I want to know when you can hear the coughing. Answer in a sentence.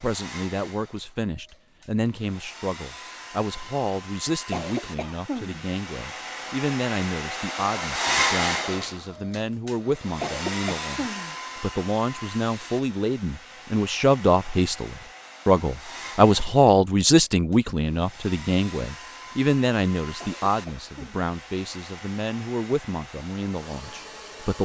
You can hear the coughing from 4.2 to 5.7 s, from 10.2 to 11.3 s and from 20.2 to 21.2 s.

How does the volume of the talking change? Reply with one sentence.
The volume of the talking goes up, then down.